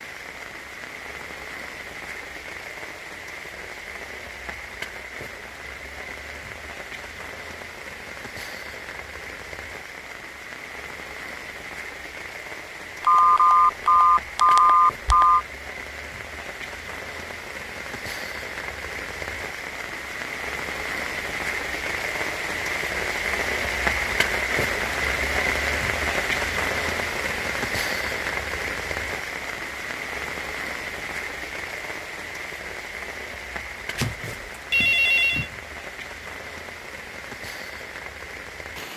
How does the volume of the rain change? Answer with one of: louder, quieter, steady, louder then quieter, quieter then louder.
louder then quieter.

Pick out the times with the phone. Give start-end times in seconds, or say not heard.
13.0-15.4, 34.0-35.5.